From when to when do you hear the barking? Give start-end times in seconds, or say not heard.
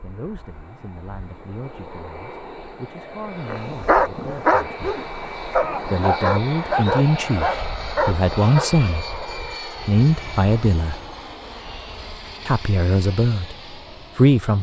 3.5-8.7.